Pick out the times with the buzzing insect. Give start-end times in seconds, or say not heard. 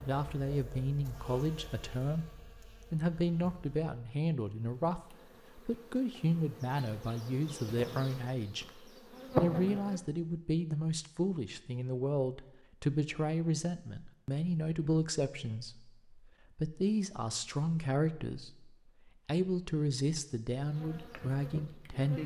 0.0-10.0, 20.6-22.2.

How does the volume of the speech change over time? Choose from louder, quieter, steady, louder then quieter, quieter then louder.
steady.